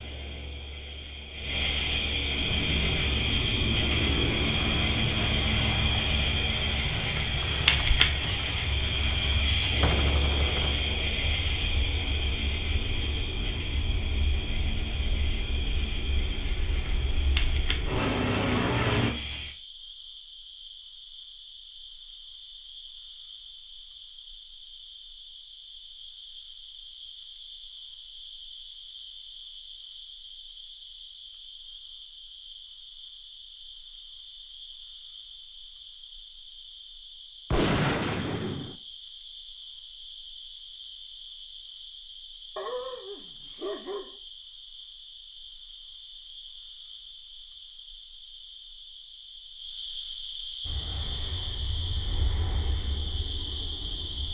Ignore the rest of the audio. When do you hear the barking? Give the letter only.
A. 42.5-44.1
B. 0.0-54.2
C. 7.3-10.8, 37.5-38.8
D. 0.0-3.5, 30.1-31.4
A.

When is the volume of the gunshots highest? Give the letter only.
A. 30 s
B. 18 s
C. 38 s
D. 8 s
C.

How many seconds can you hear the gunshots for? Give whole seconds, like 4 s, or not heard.
5 s.